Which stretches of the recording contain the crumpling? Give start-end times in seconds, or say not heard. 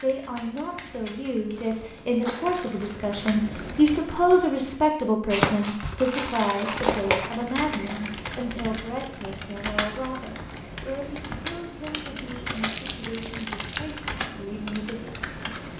1.6-3.4, 5.3-7.3, 12.6-13.9.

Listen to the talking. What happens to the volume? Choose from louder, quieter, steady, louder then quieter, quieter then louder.
louder then quieter.